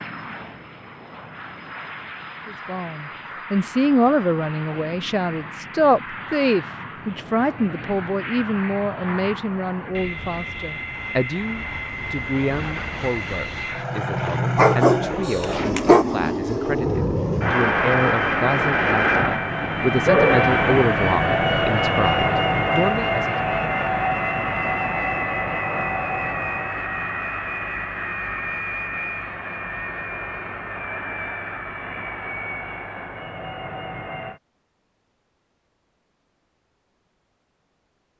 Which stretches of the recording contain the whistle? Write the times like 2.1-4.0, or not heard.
not heard.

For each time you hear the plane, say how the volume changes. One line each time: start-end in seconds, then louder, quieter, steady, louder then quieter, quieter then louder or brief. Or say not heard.
0.0-34.4 louder then quieter.